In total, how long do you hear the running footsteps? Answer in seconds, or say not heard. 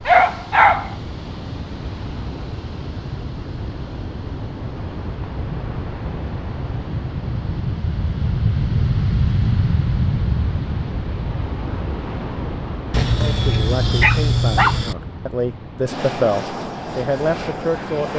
not heard.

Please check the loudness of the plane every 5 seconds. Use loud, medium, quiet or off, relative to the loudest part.
medium, loud, loud, medium.